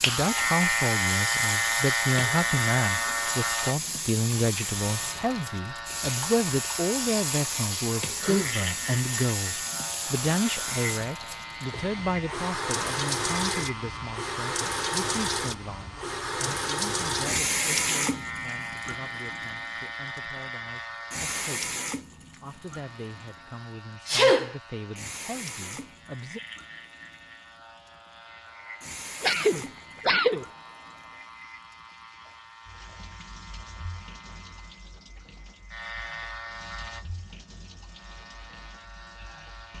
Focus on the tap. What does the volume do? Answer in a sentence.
The volume of the tap goes down.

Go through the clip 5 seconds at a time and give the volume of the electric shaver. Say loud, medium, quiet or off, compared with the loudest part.
loud, medium, medium, medium, quiet, quiet, quiet, quiet.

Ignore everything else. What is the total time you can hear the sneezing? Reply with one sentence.
The sneezing can be heard for 2 seconds in total.